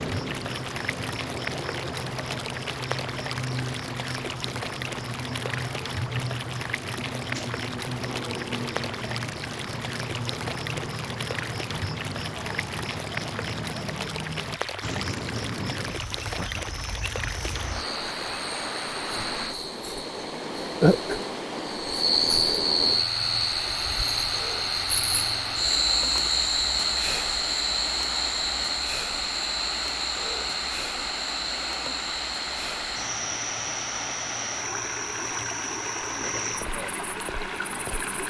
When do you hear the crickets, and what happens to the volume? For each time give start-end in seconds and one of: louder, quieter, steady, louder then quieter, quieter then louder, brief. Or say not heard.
0.0-38.2 louder then quieter.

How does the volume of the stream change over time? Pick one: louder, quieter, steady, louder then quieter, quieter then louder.
steady.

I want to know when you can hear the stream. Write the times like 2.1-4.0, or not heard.
0.0-38.2.